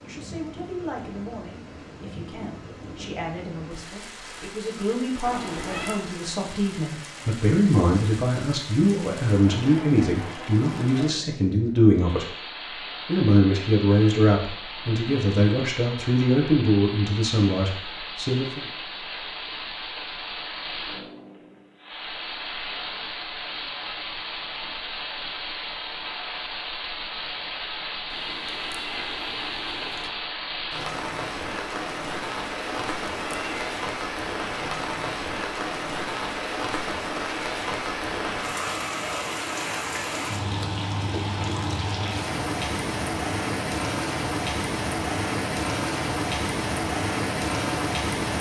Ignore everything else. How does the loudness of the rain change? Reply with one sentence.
The volume of the rain goes up.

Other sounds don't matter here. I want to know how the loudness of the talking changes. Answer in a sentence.
The loudness of the talking goes up.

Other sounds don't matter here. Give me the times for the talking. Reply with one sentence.
You can hear the talking from 0.0 to 12.2 s and from 13.1 to 18.6 s.